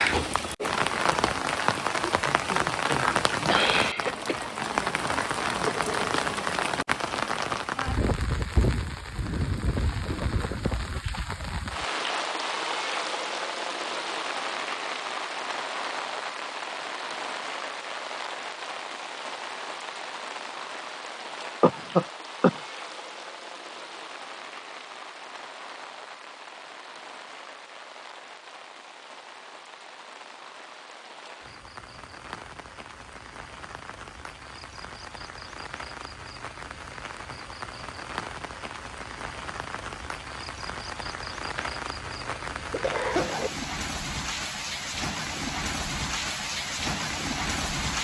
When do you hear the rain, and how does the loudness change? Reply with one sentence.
You can hear the rain from 0.0 to 48.0 s, getting quieter then louder.